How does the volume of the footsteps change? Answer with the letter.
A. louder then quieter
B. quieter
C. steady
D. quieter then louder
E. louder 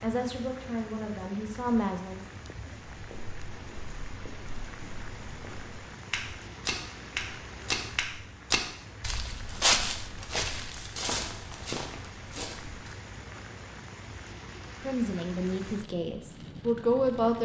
A.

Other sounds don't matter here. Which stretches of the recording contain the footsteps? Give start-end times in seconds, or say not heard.
3.0-12.9.